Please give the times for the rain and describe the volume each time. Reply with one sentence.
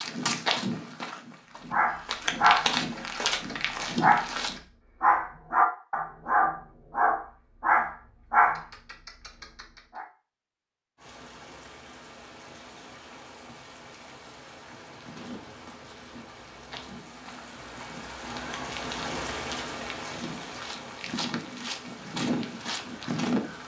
You can hear the rain from 10.9 to 23.6 s, getting louder then quieter.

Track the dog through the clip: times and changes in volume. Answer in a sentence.
You can hear the dog from 1.7 to 10.1 s, at a steady volume.